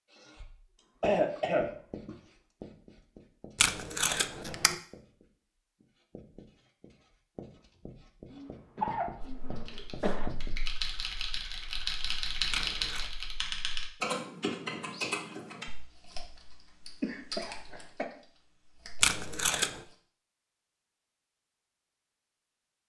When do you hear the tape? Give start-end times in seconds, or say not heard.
3.5-4.8, 12.5-13.1, 19.0-19.8.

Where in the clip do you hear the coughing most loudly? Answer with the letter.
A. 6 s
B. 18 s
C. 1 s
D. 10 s
C.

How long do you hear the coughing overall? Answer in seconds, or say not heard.
5 s.